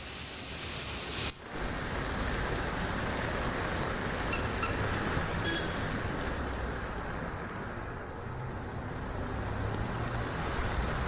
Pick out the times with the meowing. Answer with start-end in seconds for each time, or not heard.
not heard.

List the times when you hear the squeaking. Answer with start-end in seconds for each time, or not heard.
4.3-4.8.